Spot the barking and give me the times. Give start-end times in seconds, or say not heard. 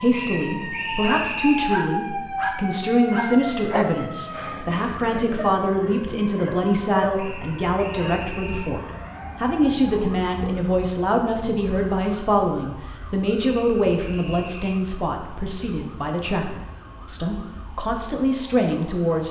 1.1-8.2.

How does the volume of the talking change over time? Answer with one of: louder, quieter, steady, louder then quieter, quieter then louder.
steady.